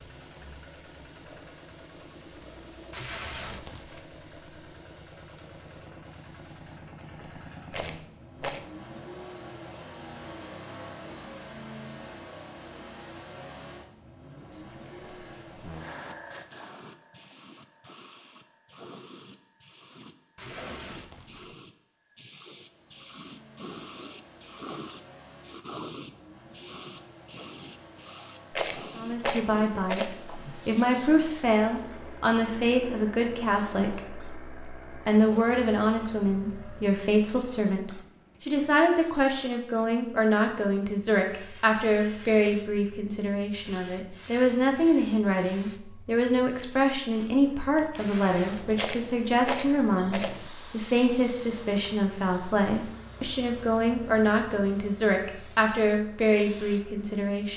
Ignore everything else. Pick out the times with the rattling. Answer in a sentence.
You can hear the rattling from 7.7 to 8.6 s, from 28.5 to 30.1 s and from 48.8 to 50.4 s.